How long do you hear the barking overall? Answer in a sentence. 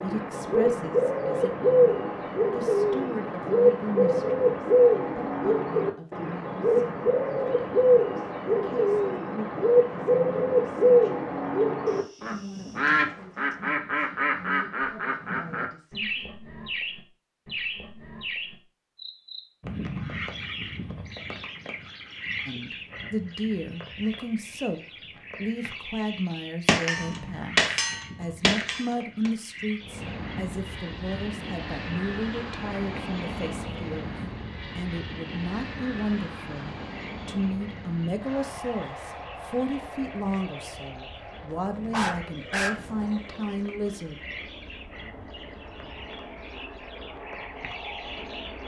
You can hear the barking for 3 seconds altogether.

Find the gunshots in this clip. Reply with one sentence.
The gunshots can be heard from 26.6 to 29.3 s.